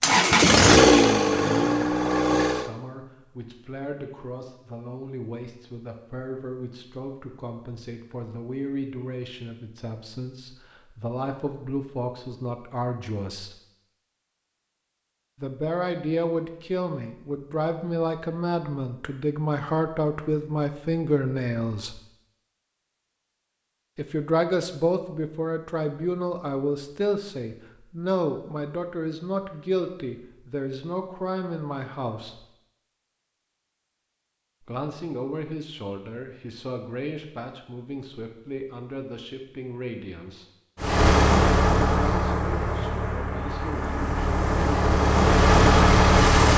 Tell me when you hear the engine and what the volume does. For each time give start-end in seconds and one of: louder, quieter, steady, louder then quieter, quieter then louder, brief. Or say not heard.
0.0-2.7 brief
40.8-46.5 quieter then louder.